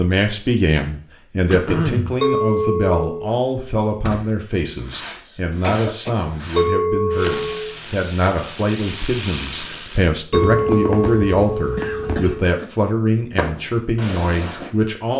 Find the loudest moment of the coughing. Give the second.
2 s.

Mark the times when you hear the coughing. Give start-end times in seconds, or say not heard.
1.5-2.1, 5.2-6.2, 11.8-12.7.